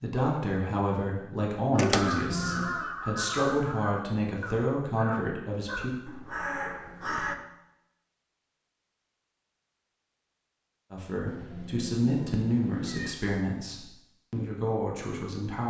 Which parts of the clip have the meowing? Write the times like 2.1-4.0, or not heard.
2.0-2.9, 6.2-7.5, 11.2-13.2.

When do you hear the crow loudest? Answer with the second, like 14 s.
2 s.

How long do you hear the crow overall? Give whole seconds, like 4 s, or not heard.
6 s.